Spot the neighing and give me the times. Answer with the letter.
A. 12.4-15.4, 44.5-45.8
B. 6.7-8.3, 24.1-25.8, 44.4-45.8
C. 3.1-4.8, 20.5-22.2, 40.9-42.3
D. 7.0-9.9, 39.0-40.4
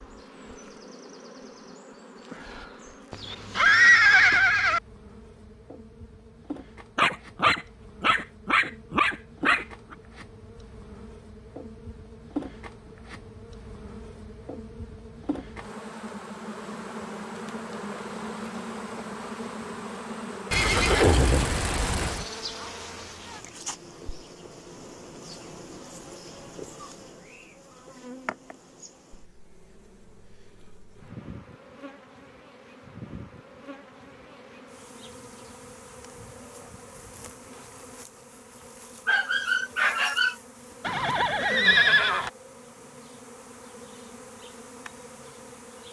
C.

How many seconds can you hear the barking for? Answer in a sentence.
The barking can be heard for 4 seconds in total.